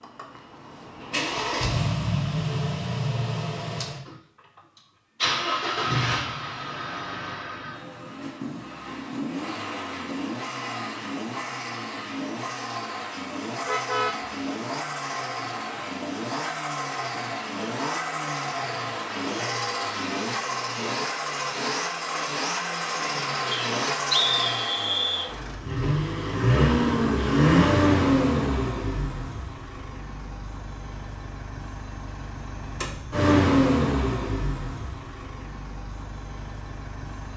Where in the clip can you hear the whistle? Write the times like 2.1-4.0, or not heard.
23.5-25.3.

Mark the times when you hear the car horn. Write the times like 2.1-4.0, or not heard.
13.7-14.2.